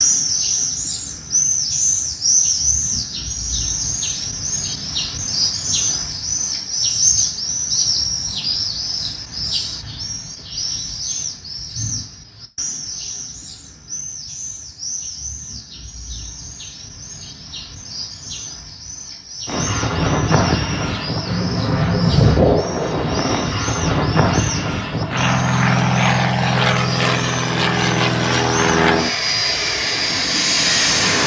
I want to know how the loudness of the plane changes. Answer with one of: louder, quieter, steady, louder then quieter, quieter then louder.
steady.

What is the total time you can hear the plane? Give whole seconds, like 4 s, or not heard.
12 s.